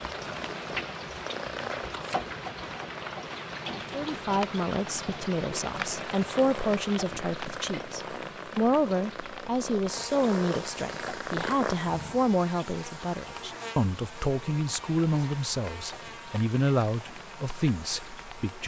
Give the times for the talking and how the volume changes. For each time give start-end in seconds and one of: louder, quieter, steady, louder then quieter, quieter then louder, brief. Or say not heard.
3.9-18.6 steady.